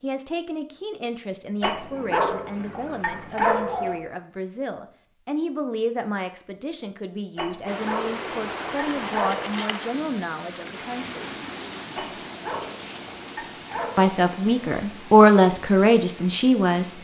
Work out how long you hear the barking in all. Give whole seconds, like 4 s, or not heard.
7 s.